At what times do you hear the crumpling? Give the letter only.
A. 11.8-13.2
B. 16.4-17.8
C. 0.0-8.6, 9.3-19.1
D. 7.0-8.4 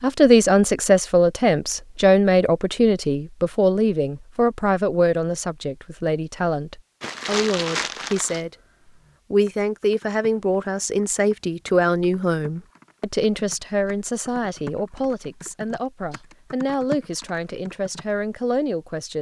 D.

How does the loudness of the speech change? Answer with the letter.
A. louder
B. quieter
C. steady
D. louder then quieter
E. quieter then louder
B.